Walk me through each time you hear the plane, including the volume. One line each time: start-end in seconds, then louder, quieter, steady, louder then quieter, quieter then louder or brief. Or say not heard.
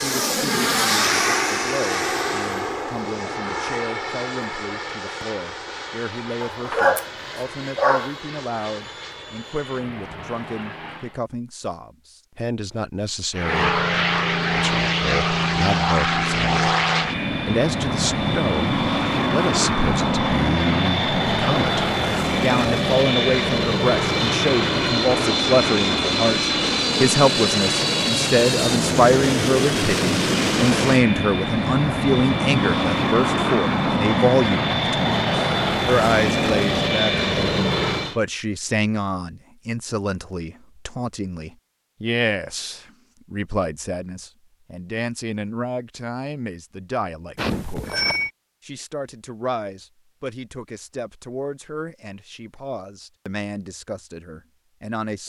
0.0-11.2 quieter
13.3-38.2 steady.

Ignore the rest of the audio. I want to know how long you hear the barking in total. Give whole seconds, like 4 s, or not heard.
2 s.